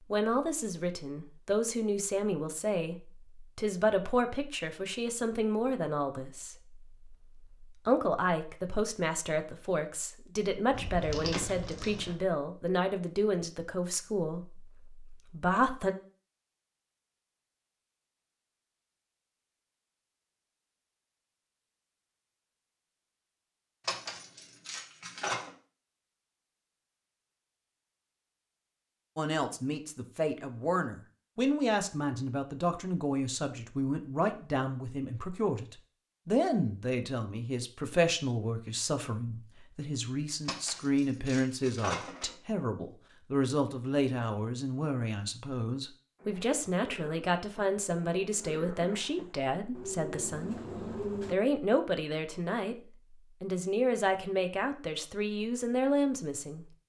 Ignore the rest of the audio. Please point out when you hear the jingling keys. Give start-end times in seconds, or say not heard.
10.7-12.2, 23.9-25.5, 40.5-42.4.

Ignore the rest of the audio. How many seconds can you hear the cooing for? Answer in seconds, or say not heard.
5 s.